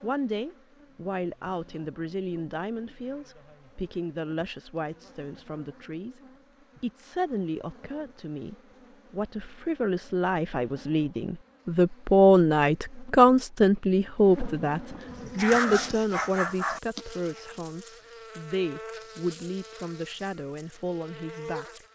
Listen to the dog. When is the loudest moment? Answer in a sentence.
The volume of the dog peaks at 16 seconds.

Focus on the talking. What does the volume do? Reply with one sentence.
The loudness of the talking goes up, then down.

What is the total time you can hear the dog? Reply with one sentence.
The dog can be heard for 2 seconds in total.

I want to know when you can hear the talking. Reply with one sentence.
The talking can be heard from 0.0 to 6.2 s and from 6.8 to 21.8 s.